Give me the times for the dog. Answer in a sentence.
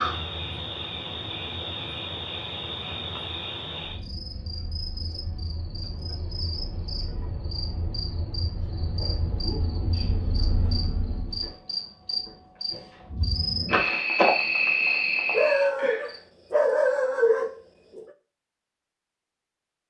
You can hear the dog from 15.3 to 18.1 s.